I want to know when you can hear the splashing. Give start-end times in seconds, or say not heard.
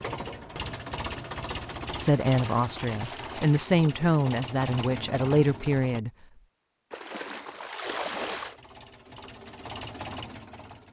2.1-3.6, 6.9-8.6.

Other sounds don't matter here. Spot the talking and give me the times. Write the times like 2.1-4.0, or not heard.
1.9-6.1.